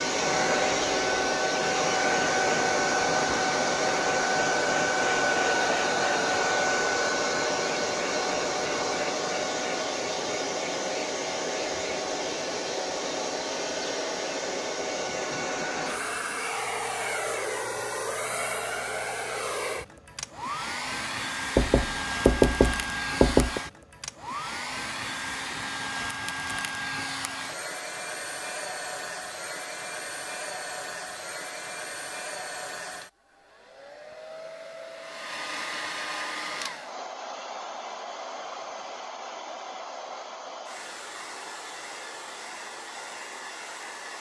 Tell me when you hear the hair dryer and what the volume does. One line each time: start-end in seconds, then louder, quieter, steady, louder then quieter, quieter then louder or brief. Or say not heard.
0.0-44.1 quieter.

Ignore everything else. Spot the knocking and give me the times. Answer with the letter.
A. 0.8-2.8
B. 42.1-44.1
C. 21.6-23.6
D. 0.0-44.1
C.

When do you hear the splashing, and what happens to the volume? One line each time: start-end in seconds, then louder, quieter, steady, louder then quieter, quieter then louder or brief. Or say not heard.
not heard.